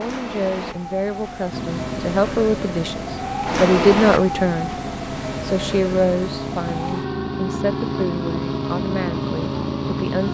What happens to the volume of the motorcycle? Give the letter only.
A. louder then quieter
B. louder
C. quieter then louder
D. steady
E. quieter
B.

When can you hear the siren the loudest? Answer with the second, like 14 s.
4 s.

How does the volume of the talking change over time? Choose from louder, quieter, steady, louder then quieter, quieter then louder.
louder then quieter.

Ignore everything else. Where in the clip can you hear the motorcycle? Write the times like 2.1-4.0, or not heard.
1.5-10.2.